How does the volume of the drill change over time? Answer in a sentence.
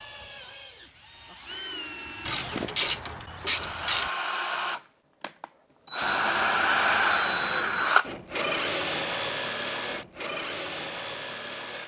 The loudness of the drill goes up, then down.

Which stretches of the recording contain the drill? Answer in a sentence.
You can hear the drill from 0.0 to 11.8 s.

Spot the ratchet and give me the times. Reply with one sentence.
You can hear the ratchet from 2.2 to 4.1 s and from 6.0 to 7.9 s.